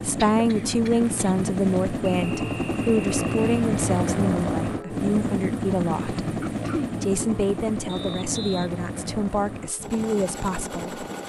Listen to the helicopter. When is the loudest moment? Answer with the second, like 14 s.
4 s.